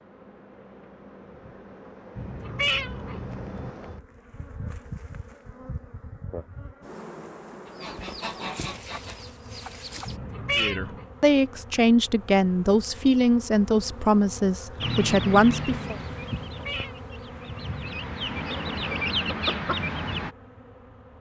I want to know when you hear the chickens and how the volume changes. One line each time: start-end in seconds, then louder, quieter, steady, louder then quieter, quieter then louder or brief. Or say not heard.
7.7-10.2 brief
14.8-20.4 quieter then louder.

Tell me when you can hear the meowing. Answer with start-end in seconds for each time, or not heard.
2.1-3.7, 10.1-11.1, 16.4-17.0.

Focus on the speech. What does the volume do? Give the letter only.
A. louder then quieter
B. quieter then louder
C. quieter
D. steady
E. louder
D.